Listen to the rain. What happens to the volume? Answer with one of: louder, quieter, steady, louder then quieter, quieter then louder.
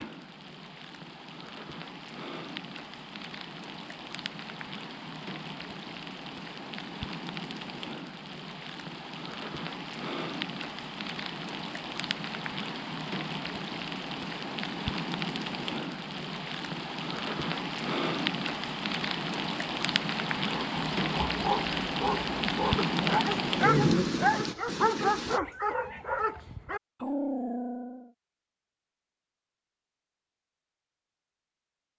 louder.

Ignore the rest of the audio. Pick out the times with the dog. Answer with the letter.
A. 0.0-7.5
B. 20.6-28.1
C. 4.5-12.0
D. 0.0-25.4
B.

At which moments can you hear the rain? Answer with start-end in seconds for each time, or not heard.
0.0-25.4.